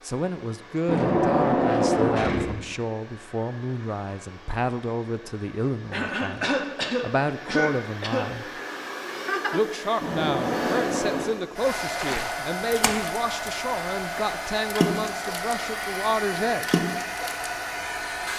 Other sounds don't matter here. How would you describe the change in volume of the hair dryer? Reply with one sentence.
The loudness of the hair dryer goes up.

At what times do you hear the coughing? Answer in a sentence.
You can hear the coughing from 5.9 to 8.3 s.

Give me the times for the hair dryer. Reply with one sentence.
The hair dryer can be heard from 0.0 to 18.3 s.